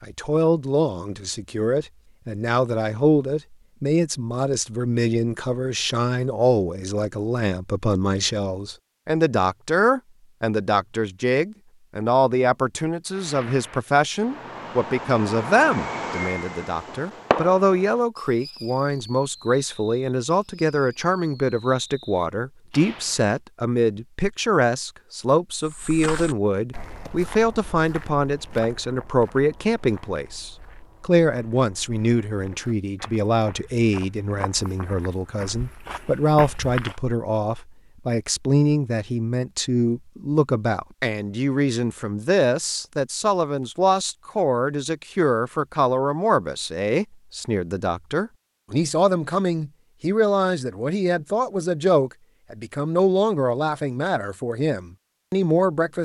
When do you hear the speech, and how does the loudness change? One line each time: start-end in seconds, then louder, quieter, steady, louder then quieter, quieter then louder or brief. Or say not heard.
0.0-56.0 steady.